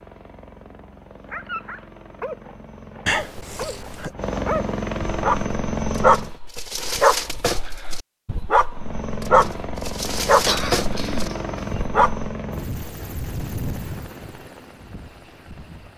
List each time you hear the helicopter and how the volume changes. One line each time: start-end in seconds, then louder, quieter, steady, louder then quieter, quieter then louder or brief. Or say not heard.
0.0-6.3 louder
8.7-15.9 quieter.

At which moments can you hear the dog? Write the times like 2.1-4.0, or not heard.
1.3-12.3.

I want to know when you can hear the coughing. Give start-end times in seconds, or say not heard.
3.0-4.1, 10.4-11.8.